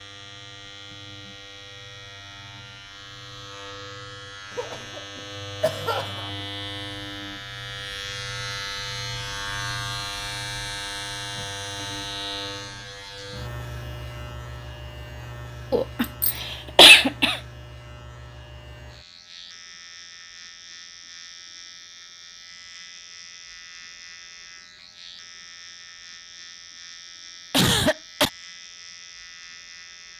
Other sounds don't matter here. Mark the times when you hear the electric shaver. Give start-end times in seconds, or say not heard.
0.0-30.1.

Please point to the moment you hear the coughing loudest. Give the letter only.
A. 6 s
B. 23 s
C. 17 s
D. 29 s
C.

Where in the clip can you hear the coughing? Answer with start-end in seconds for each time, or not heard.
4.5-6.2, 15.7-17.4, 27.5-28.3.